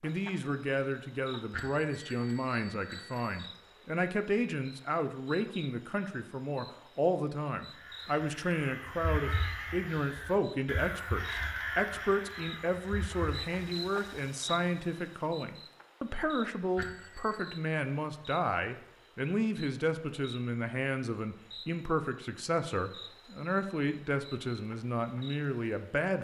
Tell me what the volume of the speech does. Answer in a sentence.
The volume of the speech stays about the same.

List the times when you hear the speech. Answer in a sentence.
You can hear the speech from 0.0 to 26.1 s.